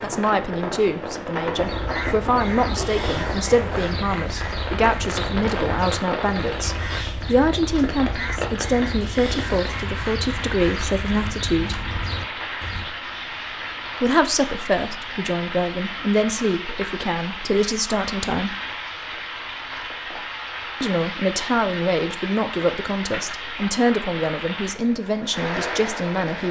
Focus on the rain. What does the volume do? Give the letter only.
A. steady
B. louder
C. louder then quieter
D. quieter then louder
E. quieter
A.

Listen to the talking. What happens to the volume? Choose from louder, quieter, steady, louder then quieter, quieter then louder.
steady.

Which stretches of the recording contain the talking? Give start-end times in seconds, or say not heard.
0.0-11.8, 14.0-18.6, 20.8-26.4.